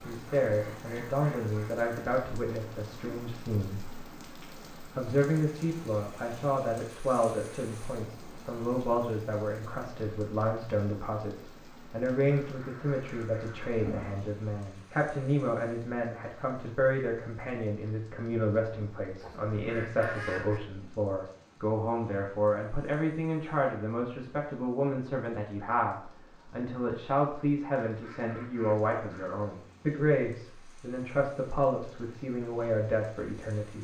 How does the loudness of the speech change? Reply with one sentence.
The loudness of the speech stays about the same.